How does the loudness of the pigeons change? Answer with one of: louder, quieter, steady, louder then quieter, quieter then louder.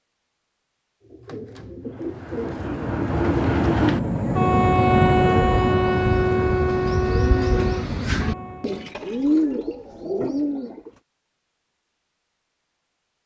louder.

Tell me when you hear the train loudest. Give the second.
5 s.